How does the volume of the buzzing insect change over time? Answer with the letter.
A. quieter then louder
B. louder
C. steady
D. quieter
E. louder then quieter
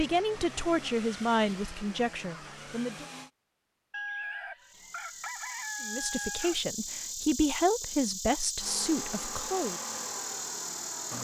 C.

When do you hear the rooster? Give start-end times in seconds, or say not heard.
3.9-6.7.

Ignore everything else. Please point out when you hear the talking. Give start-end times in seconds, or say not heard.
0.0-3.0, 5.8-9.8.